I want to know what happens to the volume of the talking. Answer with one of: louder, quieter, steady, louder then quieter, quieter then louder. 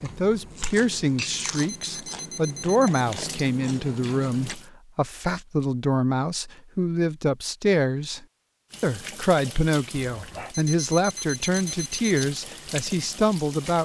steady.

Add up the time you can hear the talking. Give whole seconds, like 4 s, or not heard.
14 s.